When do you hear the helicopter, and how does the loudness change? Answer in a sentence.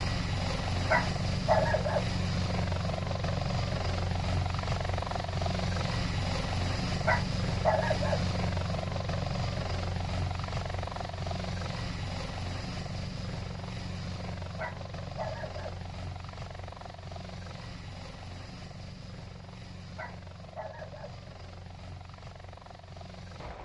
The helicopter can be heard from 0.0 to 23.6 s, getting quieter.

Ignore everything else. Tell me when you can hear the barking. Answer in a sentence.
The barking can be heard from 0.8 to 2.1 s, from 7.0 to 8.2 s, from 14.6 to 15.8 s and from 19.9 to 21.2 s.